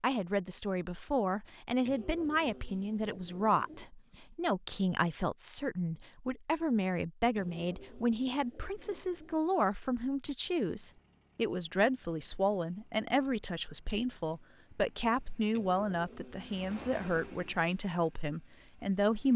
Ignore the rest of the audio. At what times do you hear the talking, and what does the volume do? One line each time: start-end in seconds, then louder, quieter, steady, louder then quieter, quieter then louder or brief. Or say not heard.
0.0-19.3 steady.